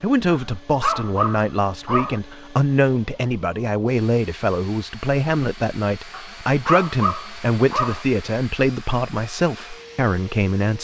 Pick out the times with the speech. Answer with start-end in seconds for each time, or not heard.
0.0-10.7.